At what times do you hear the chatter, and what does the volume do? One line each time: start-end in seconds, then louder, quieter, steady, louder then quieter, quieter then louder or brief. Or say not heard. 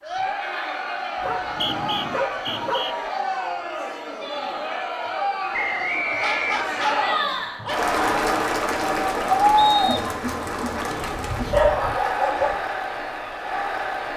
0.0-14.1 louder then quieter.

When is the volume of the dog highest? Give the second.
12 s.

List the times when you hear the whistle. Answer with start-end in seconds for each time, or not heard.
1.4-3.0, 5.5-7.0, 9.6-10.1.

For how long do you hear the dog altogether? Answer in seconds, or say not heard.
5 s.